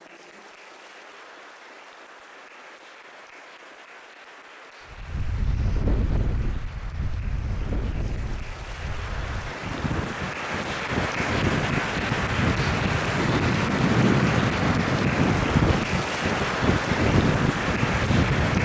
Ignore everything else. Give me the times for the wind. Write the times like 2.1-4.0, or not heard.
4.9-18.5.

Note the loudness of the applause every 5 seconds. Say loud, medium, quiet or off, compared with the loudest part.
quiet, quiet, loud, loud.